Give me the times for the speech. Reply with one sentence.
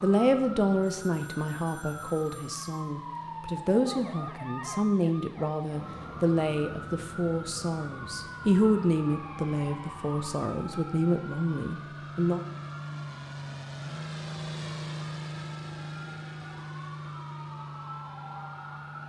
The speech can be heard from 0.0 to 12.4 s.